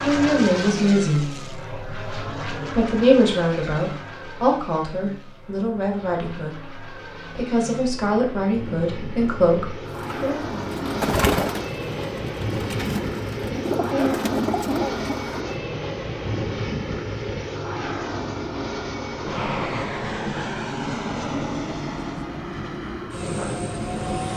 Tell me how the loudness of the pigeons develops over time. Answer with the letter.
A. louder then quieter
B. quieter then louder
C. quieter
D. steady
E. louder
B.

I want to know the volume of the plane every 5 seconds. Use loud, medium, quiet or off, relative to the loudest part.
loud, medium, loud, loud, loud.